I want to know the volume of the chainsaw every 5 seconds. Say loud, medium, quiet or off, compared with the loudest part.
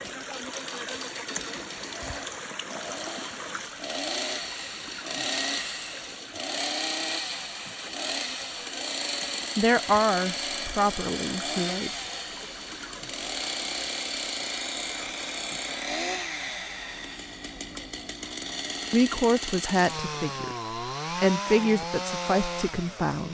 medium, loud, loud, loud, loud.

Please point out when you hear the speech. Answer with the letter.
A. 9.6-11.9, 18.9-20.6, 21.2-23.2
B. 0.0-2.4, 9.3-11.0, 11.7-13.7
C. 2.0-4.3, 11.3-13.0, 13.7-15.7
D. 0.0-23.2
A.